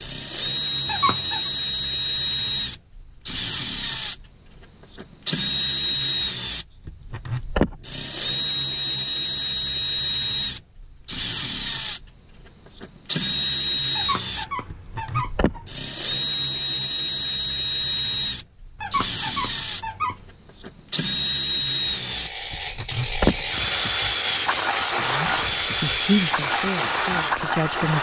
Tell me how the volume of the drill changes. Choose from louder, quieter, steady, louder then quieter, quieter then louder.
steady.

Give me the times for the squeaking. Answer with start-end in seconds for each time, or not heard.
0.8-1.5, 13.9-15.8, 18.8-20.2.